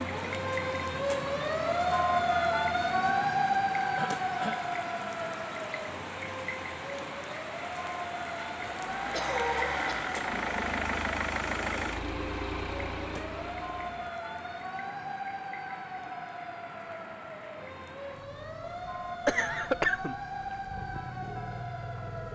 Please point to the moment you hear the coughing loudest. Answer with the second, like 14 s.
20 s.